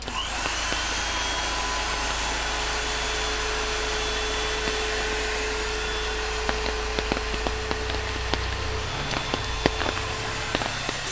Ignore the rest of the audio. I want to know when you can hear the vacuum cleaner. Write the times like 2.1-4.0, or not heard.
0.0-11.0.